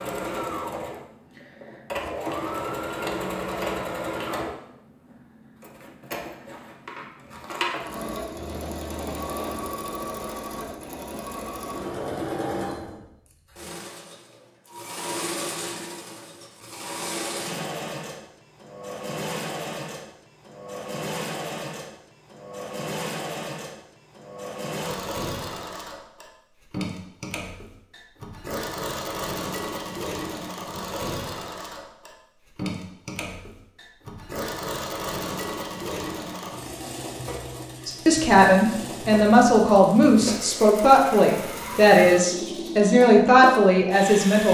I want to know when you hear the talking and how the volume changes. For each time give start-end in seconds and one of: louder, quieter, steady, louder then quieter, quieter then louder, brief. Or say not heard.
37.9-44.5 steady.